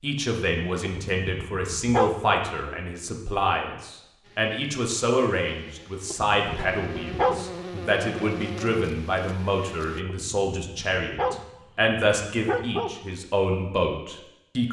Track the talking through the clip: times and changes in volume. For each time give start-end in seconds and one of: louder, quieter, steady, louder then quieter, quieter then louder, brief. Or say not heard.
0.0-14.6 steady.